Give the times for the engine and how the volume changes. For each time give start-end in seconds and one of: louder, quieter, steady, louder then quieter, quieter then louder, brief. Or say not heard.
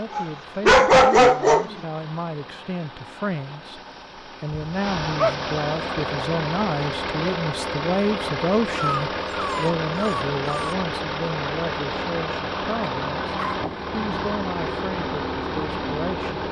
0.0-16.4 louder.